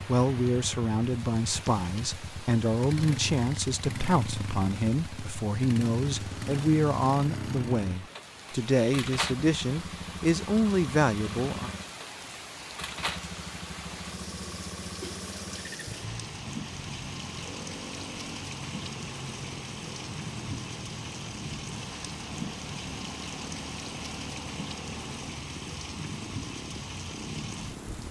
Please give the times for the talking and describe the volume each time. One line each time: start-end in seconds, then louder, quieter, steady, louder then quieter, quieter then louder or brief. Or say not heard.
0.1-11.7 steady.